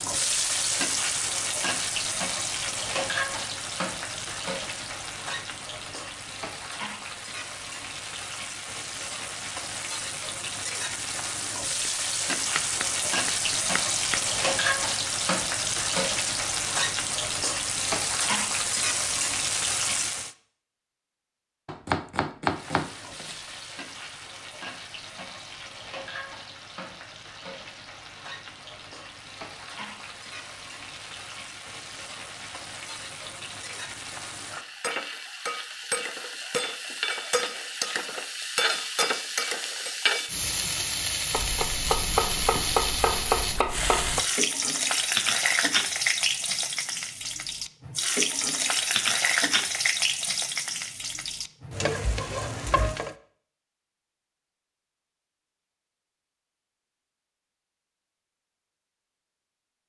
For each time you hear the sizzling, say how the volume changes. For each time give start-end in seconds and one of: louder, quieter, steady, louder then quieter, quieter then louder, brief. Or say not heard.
0.0-20.4 quieter then louder
22.4-53.1 louder.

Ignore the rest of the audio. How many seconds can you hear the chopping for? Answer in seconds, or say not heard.
7 s.